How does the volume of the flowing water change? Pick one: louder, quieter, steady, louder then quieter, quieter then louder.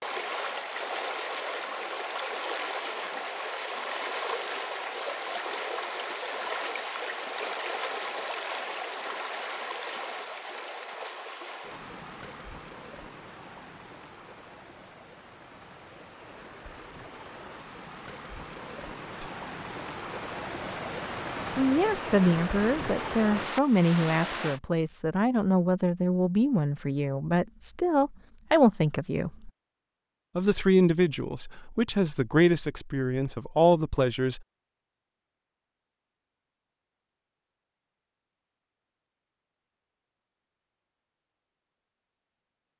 quieter then louder.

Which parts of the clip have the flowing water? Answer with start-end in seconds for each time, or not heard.
0.0-24.6.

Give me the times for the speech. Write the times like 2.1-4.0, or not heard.
21.6-29.5, 30.4-34.4.